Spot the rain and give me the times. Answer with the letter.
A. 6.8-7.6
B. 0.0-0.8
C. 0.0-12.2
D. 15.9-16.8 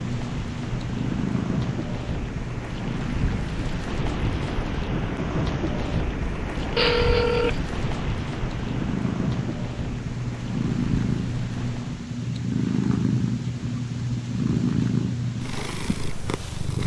C.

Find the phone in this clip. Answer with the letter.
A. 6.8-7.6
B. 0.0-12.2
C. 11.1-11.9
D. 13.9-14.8
A.